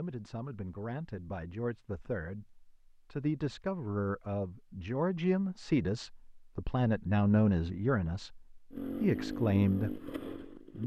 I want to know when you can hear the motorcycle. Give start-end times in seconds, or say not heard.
8.7-10.8.